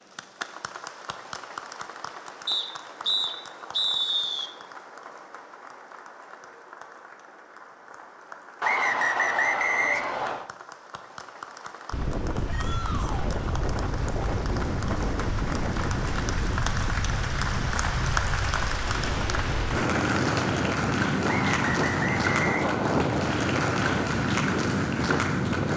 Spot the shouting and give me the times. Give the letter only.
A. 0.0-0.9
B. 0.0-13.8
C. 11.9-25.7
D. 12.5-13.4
D.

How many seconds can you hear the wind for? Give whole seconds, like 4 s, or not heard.
14 s.